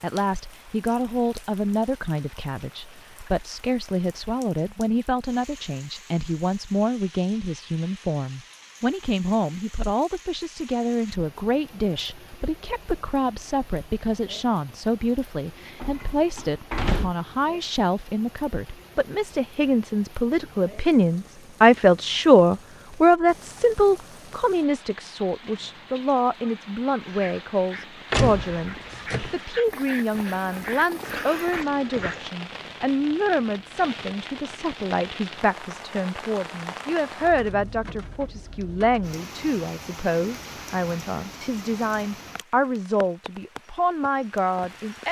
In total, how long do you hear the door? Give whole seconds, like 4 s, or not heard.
3 s.